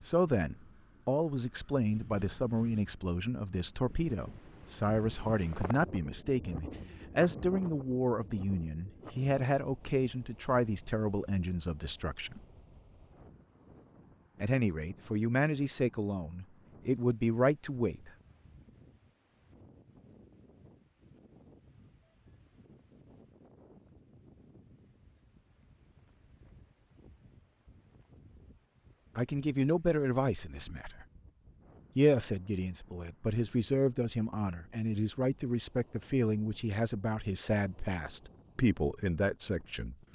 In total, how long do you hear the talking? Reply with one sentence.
The talking can be heard for 26 seconds in total.